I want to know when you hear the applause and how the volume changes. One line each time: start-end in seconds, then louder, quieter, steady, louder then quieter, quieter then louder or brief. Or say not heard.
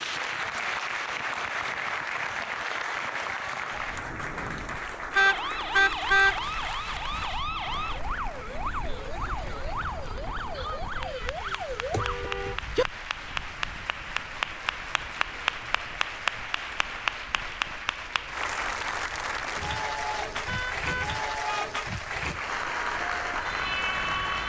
0.0-24.4 quieter then louder.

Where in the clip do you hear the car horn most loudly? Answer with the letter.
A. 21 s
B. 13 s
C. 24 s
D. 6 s
D.